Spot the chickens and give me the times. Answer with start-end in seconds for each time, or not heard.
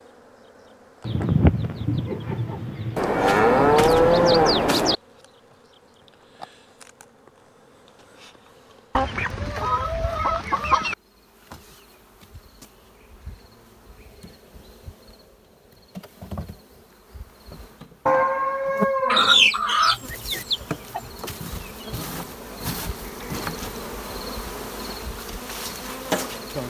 1.1-3.0, 8.9-10.9, 19.1-21.0.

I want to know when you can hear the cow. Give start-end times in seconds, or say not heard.
3.0-5.0, 18.1-19.5.